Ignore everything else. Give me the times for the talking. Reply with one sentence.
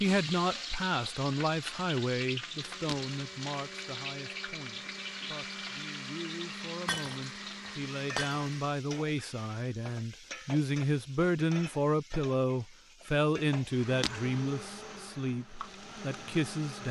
The talking can be heard from 0.0 to 16.8 s.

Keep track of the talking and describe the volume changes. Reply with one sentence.
The volume of the talking goes down, then up.